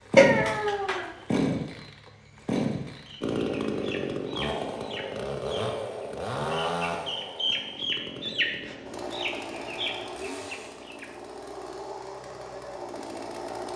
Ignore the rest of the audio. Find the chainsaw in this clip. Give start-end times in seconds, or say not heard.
0.0-13.7.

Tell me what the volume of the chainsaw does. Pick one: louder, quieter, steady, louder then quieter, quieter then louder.
quieter.